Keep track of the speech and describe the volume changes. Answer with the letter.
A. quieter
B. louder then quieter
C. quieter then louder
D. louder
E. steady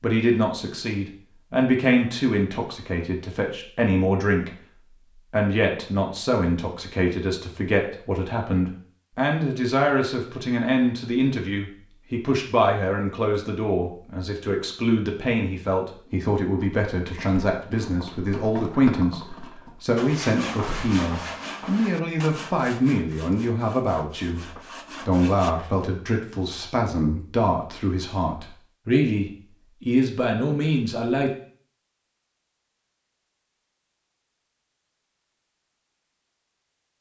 E.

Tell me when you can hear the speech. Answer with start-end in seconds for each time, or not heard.
0.0-4.5, 5.3-31.3.